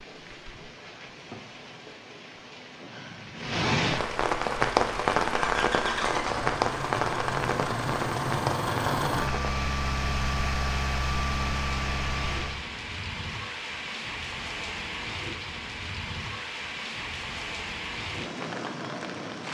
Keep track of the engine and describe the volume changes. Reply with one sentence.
The volume of the engine stays about the same.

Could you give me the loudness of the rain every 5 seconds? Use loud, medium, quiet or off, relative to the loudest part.
loud, loud, medium, medium.